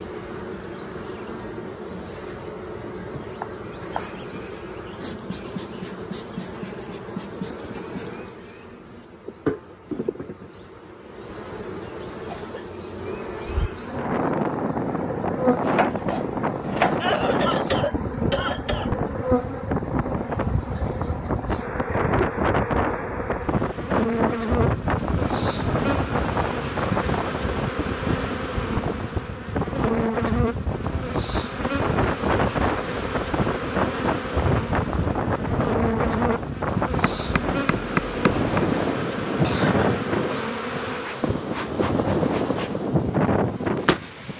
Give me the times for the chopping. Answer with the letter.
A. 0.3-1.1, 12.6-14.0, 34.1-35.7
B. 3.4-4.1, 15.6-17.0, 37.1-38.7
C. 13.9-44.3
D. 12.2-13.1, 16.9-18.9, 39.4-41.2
B.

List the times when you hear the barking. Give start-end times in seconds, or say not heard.
not heard.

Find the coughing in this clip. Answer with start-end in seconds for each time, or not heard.
12.2-13.1, 16.9-18.9, 39.4-41.2.